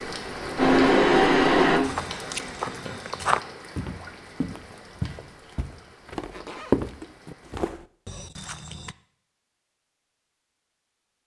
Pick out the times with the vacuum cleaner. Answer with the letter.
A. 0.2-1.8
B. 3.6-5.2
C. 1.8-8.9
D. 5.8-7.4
A.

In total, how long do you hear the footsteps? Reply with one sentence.
You can hear the footsteps for 7 seconds altogether.